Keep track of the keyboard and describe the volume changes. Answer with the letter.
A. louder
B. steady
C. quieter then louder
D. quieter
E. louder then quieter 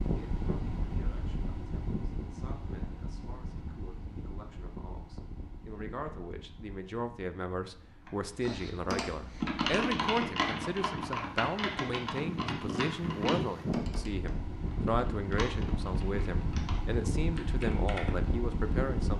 D.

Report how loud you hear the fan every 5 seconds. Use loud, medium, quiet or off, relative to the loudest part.
medium, quiet, loud, loud.